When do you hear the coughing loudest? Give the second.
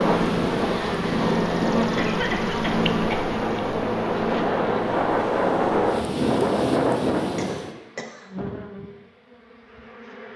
2 s.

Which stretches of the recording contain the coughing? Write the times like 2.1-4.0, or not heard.
1.9-3.2, 7.3-8.4.